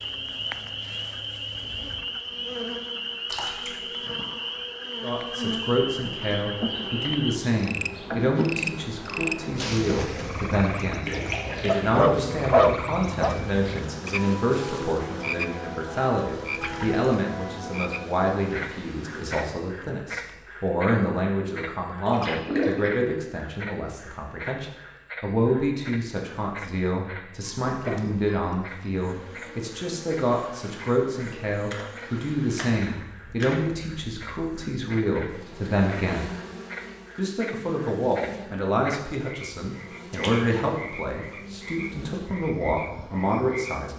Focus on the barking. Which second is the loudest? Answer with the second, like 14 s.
13 s.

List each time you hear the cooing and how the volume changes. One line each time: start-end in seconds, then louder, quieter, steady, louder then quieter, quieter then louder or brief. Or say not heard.
not heard.